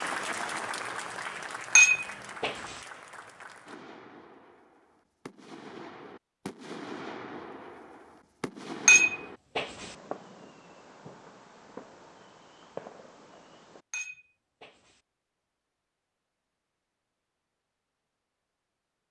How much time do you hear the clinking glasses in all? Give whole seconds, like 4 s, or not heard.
3 s.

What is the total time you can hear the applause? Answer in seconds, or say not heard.
4 s.